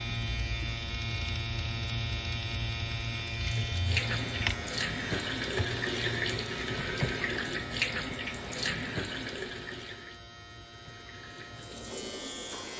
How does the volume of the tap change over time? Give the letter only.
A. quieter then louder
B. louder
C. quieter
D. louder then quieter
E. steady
C.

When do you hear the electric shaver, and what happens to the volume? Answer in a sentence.
You can hear the electric shaver from 0.0 to 12.7 s, getting quieter.